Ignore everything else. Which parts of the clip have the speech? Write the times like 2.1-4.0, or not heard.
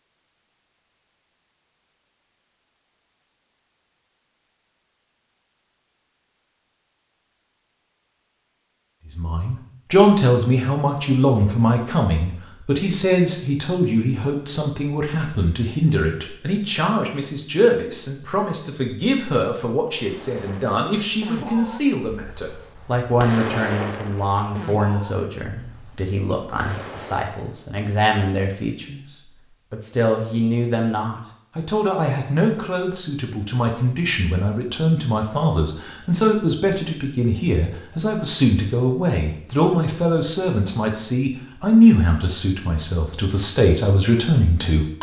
9.2-44.9.